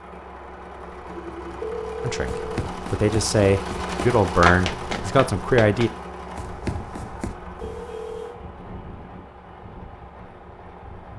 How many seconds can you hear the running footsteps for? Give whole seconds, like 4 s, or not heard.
5 s.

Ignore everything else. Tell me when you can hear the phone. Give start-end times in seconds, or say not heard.
1.1-2.7, 7.6-8.3.